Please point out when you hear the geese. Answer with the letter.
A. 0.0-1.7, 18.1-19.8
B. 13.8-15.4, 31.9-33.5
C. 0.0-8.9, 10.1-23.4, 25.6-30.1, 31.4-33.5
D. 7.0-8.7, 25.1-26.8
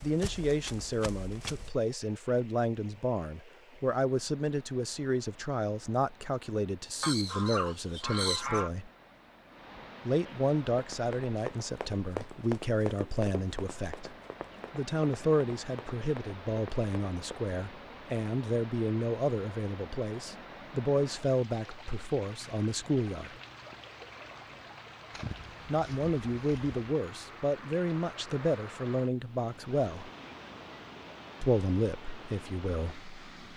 D.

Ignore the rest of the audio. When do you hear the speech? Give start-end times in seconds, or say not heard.
0.0-8.9, 10.1-23.4, 25.6-30.1, 31.4-33.5.